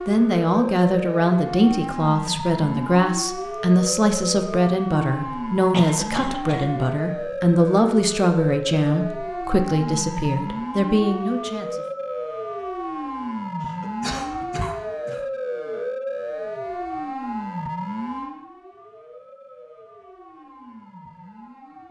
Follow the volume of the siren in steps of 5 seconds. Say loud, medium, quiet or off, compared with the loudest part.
loud, loud, loud, loud, quiet.